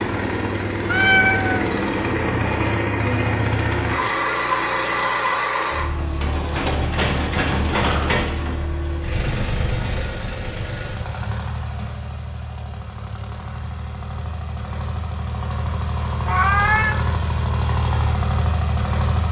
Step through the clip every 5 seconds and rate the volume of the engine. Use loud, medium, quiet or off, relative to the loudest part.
loud, loud, medium, loud.